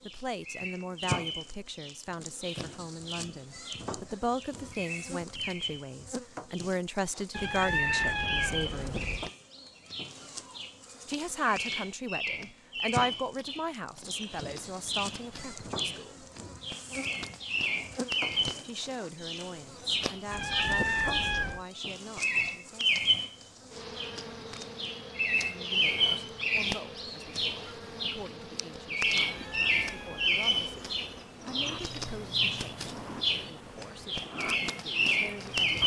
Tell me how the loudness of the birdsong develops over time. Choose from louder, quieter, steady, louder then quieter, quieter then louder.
louder.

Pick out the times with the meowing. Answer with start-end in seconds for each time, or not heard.
7.3-9.3, 20.3-21.6, 29.1-30.4.